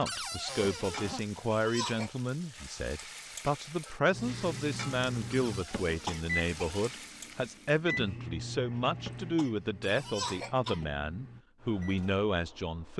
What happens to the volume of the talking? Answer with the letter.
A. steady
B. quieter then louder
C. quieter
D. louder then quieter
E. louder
A.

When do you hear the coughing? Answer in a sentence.
The coughing can be heard from 0.8 to 2.1 s, from 5.7 to 6.8 s and from 9.0 to 10.9 s.